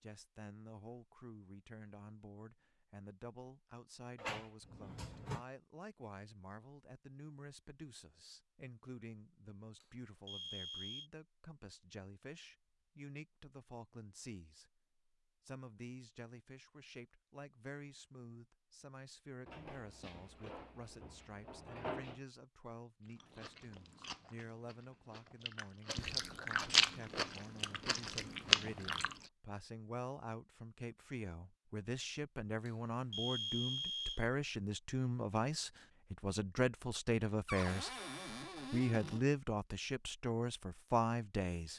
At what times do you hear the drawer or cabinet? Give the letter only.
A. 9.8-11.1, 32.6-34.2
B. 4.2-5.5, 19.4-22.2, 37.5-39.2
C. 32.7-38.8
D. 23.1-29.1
B.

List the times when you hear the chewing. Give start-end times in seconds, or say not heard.
23.1-29.1.